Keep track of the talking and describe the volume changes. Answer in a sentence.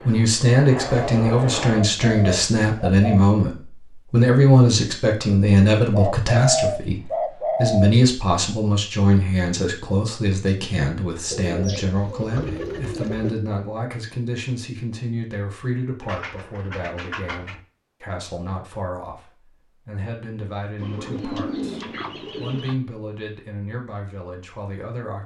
The loudness of the talking goes down.